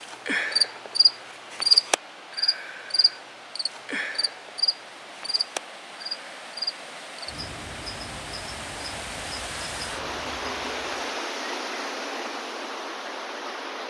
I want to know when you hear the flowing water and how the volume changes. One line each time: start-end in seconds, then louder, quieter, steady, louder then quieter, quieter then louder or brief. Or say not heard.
0.0-13.8 louder.